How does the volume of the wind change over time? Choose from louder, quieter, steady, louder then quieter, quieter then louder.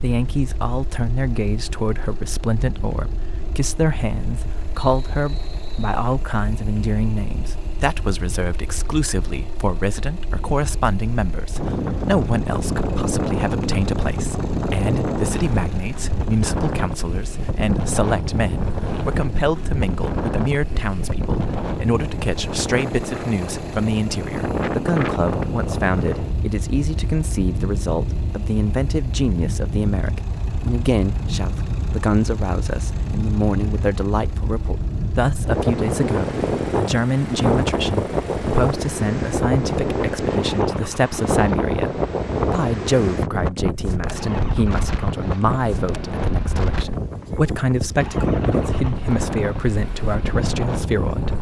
louder.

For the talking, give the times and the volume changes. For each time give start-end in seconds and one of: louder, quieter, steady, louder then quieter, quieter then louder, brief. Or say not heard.
0.0-51.3 steady.